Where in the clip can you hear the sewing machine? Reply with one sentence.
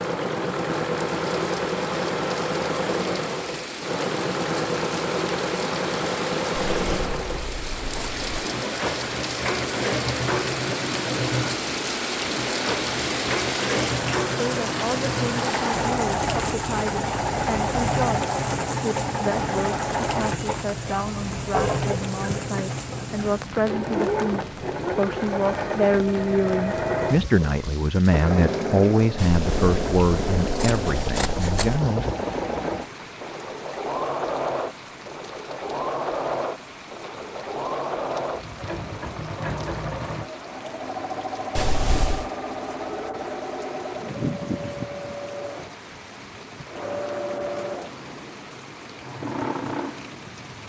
The sewing machine can be heard from 0.0 to 50.6 s.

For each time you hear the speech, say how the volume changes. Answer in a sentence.
You can hear the speech from 14.3 to 32.0 s, getting louder.